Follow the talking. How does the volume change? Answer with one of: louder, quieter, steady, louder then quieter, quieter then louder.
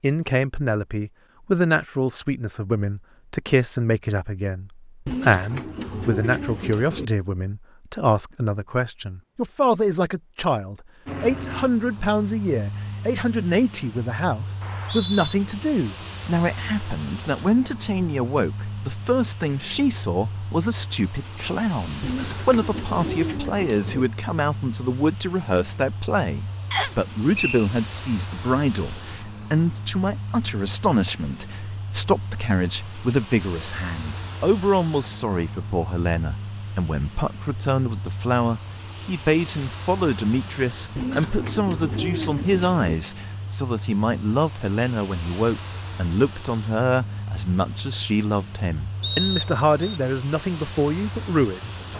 steady.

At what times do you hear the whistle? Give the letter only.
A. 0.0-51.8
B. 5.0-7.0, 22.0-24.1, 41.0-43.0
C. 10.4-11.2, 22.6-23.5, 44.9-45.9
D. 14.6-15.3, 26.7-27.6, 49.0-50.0
D.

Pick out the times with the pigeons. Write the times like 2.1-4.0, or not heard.
5.0-7.0, 22.0-24.1, 41.0-43.0.